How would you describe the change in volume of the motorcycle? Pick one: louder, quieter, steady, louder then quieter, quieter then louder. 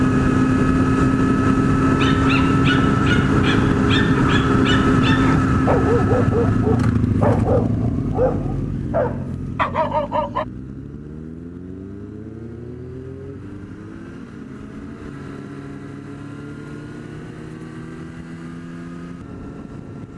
quieter.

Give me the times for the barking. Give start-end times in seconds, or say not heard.
1.9-10.4.